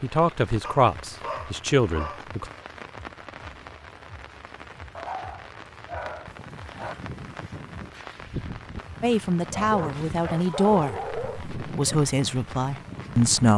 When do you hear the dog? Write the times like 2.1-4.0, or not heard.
0.6-2.6, 5.0-7.0, 9.5-12.0.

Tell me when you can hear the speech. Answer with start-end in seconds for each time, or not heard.
0.0-2.5, 9.0-13.5.